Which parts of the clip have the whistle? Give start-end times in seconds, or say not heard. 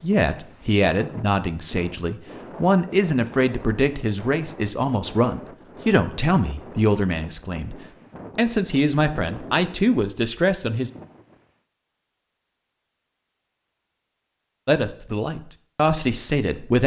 not heard.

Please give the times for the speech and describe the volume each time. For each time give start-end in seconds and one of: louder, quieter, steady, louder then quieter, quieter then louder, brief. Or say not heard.
0.0-10.9 steady
14.7-16.8 brief.